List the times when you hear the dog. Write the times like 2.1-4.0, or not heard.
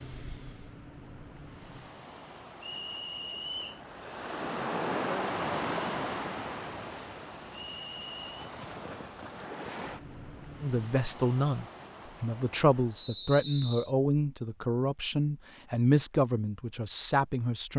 not heard.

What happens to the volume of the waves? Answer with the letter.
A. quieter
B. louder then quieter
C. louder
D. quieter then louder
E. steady
B.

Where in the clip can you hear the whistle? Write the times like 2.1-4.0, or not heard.
2.6-3.8, 7.5-8.5, 12.9-13.9.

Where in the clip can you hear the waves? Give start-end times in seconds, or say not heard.
0.0-13.1.